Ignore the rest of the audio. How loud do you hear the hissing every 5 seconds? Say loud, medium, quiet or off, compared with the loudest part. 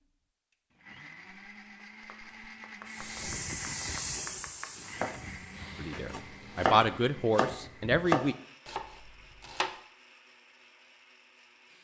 loud, quiet, off.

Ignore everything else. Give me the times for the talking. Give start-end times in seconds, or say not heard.
5.8-8.3.